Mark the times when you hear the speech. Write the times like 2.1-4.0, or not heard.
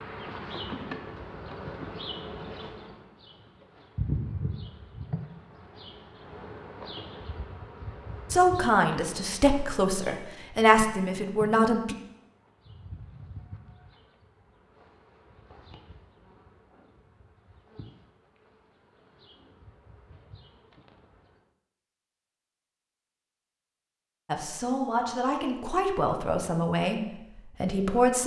8.3-11.9, 24.2-28.2.